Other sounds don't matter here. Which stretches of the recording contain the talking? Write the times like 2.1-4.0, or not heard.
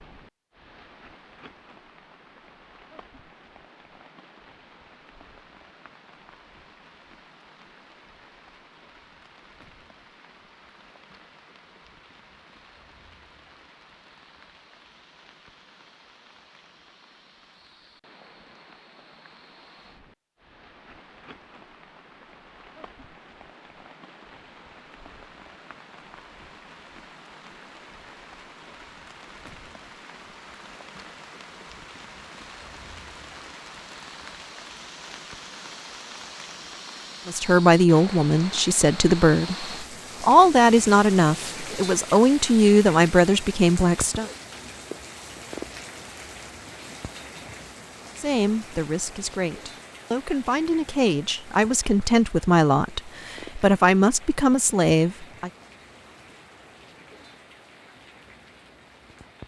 37.2-44.3, 48.1-55.5.